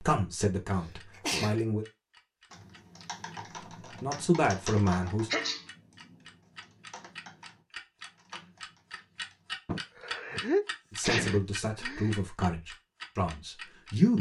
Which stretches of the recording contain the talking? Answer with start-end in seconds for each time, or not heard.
0.0-1.9, 4.0-5.3, 10.9-14.1.